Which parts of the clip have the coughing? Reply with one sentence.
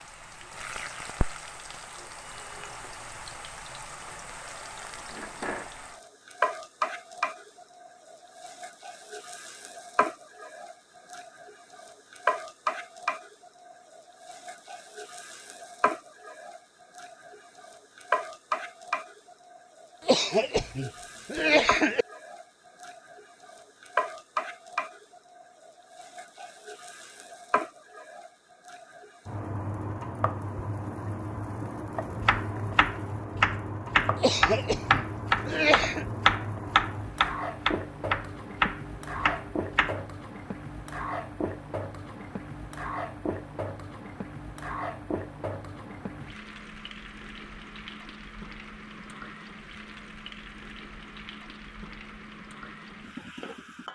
The coughing can be heard from 20.1 to 22.1 s and from 34.2 to 36.0 s.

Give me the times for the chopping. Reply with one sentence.
You can hear the chopping from 32.2 to 40.0 s.